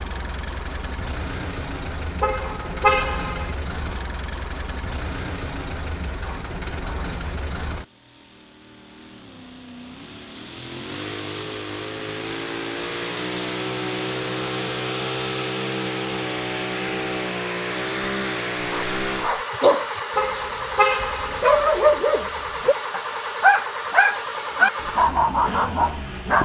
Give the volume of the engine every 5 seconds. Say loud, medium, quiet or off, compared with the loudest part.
medium, medium, loud, loud, loud, medium.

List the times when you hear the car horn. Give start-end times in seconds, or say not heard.
2.2-3.5, 20.1-21.4.